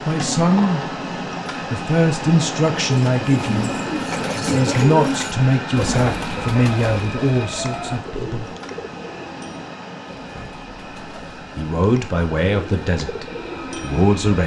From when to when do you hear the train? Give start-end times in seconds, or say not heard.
0.0-14.4.